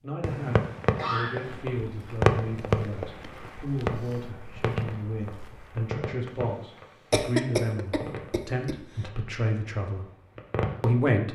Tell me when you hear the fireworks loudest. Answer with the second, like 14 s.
2 s.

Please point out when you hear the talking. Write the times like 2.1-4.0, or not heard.
0.0-10.1, 10.8-11.3.